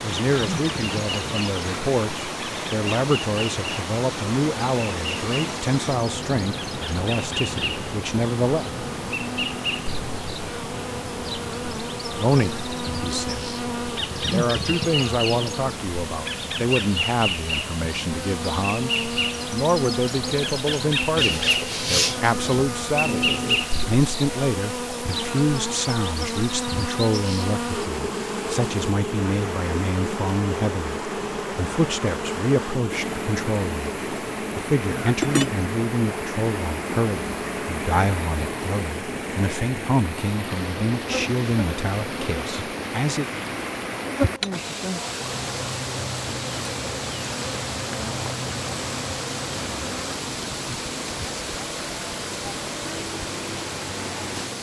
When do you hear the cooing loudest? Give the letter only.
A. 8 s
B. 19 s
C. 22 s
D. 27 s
C.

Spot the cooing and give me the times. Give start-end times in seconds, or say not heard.
21.1-23.6.